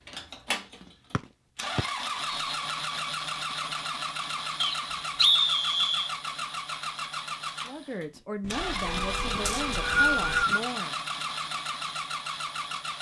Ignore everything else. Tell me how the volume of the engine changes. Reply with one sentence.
The loudness of the engine stays about the same.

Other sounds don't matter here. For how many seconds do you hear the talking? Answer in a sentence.
You can hear the talking for 3 seconds altogether.